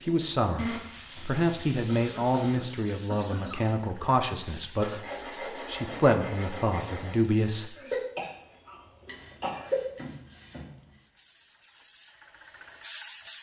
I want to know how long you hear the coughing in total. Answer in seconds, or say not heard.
4 s.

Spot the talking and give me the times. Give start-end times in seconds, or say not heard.
0.0-7.8.